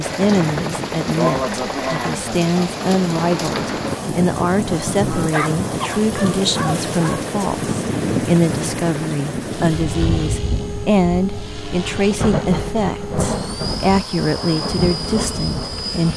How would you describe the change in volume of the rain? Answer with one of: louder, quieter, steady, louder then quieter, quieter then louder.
steady.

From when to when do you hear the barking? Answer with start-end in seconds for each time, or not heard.
5.3-7.3.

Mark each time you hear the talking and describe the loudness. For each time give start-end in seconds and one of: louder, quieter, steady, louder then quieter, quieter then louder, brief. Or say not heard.
0.0-16.1 steady.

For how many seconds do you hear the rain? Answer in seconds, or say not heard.
16 s.